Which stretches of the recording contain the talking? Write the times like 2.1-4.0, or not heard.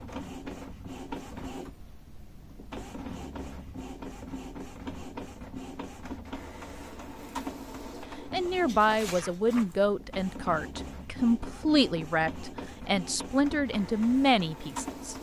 8.3-15.1.